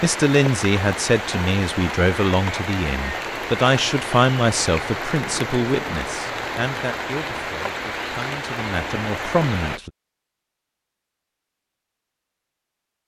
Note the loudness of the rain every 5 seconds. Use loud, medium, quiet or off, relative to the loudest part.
loud, loud, off.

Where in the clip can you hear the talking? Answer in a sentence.
You can hear the talking from 0.0 to 9.9 s.